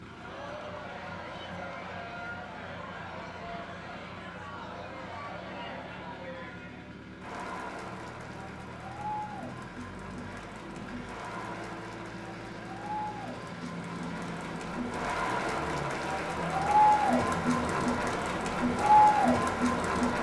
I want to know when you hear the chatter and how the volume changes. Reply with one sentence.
The chatter can be heard from 0.1 to 20.1 s, getting louder.